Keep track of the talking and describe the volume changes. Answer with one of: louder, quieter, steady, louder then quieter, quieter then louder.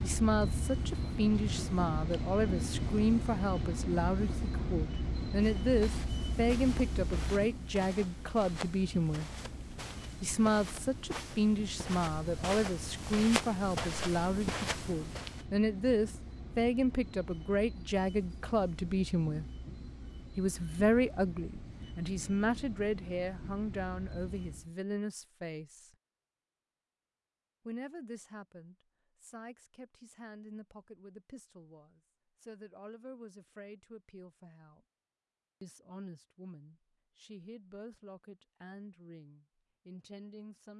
quieter.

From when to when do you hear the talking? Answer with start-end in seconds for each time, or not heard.
0.0-9.3, 10.2-19.4, 20.4-25.9, 27.6-34.8, 35.6-40.7.